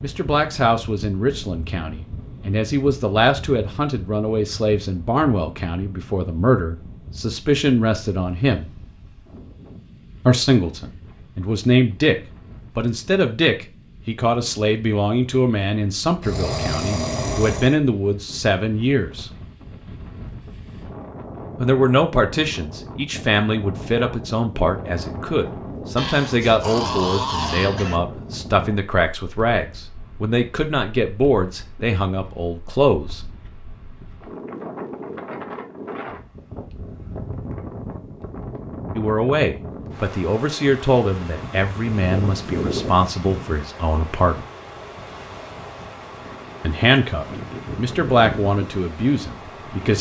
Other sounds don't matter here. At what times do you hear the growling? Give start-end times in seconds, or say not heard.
16.2-17.8, 25.9-28.0.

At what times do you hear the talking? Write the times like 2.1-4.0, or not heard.
0.0-8.7, 10.2-12.2, 12.8-19.3, 21.6-33.2, 39.0-44.5, 46.6-49.9.